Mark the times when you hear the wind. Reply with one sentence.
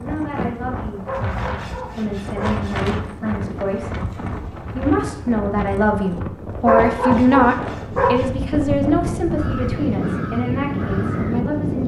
You can hear the wind from 0.0 to 11.8 s.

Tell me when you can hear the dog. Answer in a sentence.
The dog can be heard from 1.1 to 2.6 s and from 6.7 to 8.2 s.